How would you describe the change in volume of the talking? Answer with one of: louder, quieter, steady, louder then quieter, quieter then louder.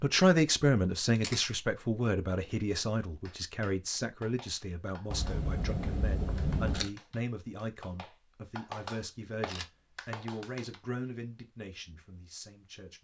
quieter.